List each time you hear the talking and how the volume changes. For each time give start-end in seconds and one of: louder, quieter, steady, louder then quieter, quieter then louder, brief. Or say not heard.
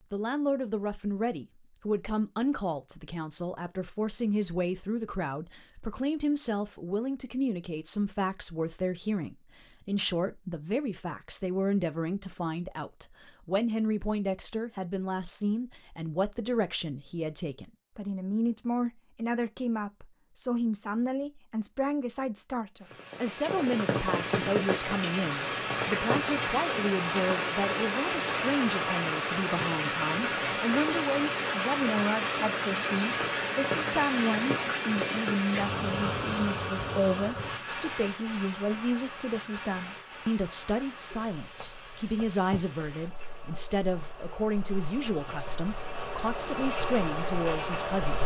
0.1-48.2 steady.